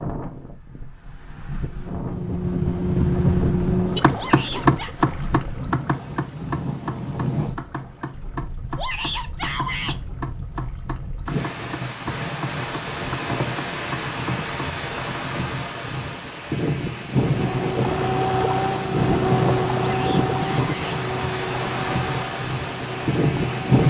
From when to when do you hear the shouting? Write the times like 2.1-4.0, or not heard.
4.2-5.0, 8.8-10.0, 19.9-21.0.